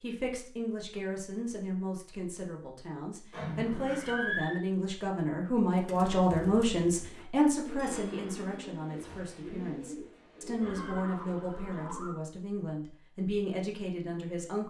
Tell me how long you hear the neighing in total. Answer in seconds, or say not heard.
3 s.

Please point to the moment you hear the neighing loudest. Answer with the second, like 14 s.
4 s.